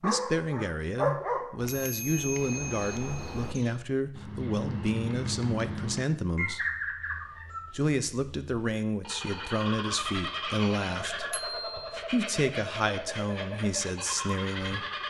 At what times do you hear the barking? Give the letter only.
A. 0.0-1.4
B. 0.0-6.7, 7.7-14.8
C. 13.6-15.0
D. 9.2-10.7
A.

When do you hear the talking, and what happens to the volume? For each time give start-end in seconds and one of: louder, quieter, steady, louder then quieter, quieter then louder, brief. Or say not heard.
0.0-6.7 steady
7.7-14.8 steady.